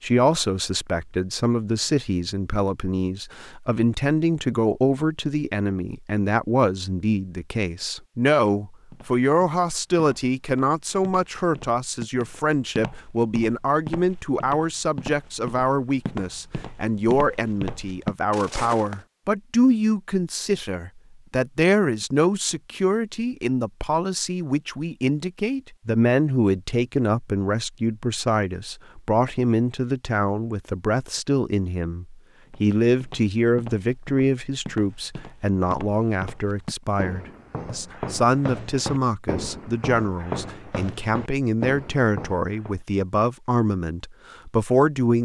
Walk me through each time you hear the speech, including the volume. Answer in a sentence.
You can hear the speech from 0.0 to 45.2 s, at a steady volume.